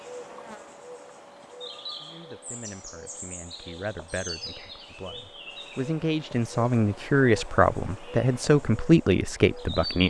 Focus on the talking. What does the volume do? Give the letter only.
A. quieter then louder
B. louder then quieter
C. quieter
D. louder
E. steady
D.